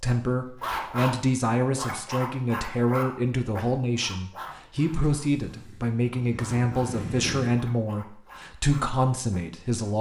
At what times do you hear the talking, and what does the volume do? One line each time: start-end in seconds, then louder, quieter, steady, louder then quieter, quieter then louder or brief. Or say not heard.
0.0-9.9 steady.